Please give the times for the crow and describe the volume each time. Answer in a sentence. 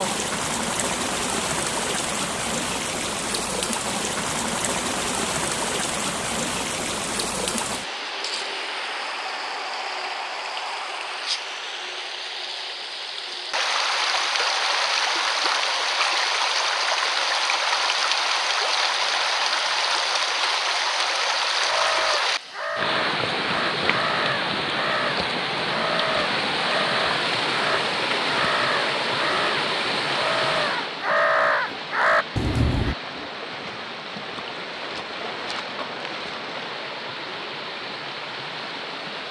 You can hear the crow from 21.6 to 33.0 s, getting louder.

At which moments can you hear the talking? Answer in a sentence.
You can't hear the talking here.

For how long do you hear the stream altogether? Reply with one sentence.
The stream can be heard for 39 seconds in total.